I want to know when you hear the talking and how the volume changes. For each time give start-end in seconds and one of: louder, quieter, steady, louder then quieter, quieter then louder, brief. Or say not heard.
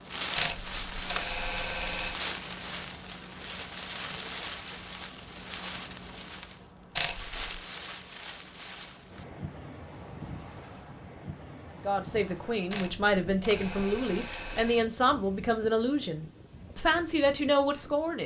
11.8-18.2 steady.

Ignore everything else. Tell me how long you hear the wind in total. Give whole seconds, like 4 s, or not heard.
18 s.